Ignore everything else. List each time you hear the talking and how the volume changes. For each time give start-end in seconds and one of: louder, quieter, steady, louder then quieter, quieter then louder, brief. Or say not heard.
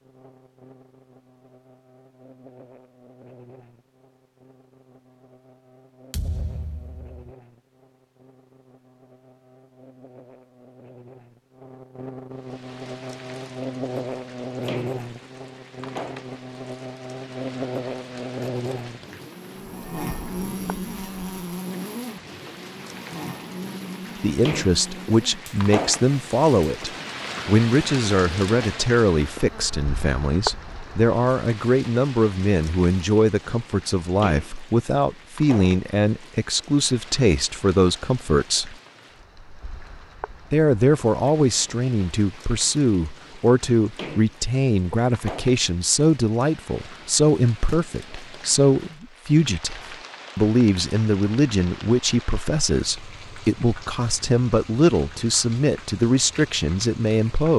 24.2-38.8 steady
40.5-57.5 steady.